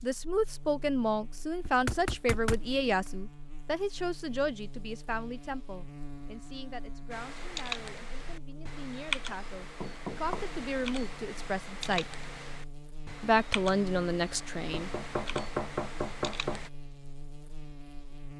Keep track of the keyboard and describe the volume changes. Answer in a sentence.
The volume of the keyboard goes down.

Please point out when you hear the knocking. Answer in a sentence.
The knocking can be heard from 1.6 to 3.1 s, from 9.2 to 10.5 s and from 14.7 to 16.6 s.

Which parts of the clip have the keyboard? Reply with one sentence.
You can hear the keyboard from 7.1 to 16.7 s.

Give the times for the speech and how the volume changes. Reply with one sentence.
The speech can be heard from 0.0 to 12.1 s, getting quieter then louder; and briefly from 13.2 to 14.9 s.